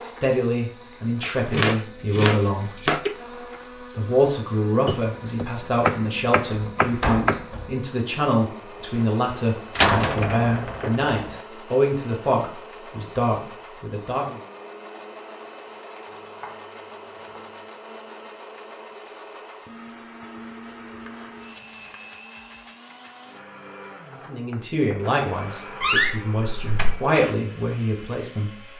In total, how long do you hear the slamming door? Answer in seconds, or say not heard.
4 s.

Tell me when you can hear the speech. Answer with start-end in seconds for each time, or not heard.
0.0-3.0, 4.0-14.4, 24.2-28.7.